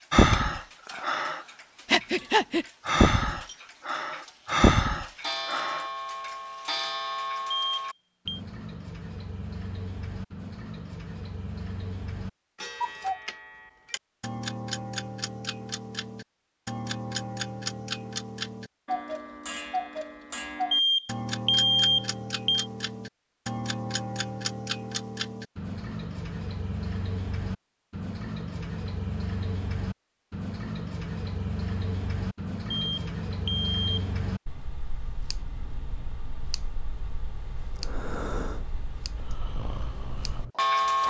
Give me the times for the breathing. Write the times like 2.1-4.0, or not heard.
0.1-5.8, 37.7-41.0.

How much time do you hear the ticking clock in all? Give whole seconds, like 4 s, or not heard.
41 s.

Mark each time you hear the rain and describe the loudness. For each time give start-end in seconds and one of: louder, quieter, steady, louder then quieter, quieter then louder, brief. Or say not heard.
not heard.